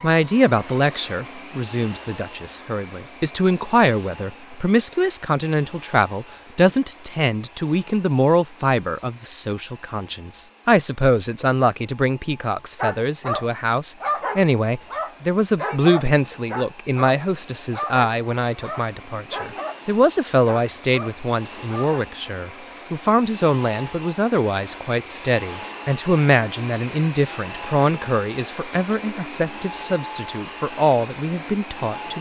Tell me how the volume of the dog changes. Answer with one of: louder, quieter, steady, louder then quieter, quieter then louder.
quieter.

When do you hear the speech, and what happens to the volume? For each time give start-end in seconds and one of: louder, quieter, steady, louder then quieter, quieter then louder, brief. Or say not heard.
0.0-32.1 steady.